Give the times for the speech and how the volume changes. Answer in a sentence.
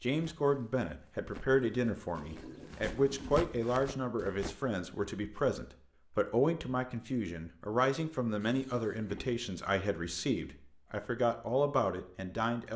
The speech can be heard from 0.0 to 12.7 s, at a steady volume.